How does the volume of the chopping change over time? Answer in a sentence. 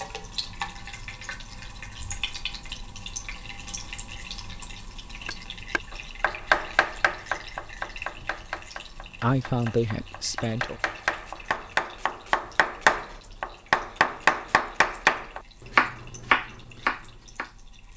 The loudness of the chopping goes down, then up.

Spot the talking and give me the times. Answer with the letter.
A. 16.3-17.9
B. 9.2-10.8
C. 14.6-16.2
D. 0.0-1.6
B.